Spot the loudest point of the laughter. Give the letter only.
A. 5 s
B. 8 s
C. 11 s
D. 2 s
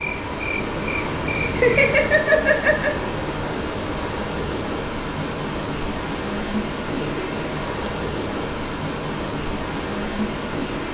D.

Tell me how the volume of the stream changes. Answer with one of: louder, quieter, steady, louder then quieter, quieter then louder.
steady.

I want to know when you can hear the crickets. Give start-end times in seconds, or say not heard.
0.0-8.8.